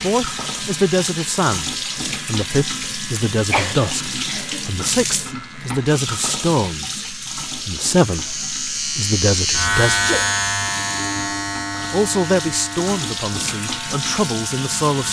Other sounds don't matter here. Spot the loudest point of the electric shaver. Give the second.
10 s.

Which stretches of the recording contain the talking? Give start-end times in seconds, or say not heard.
0.0-10.0, 11.9-15.0.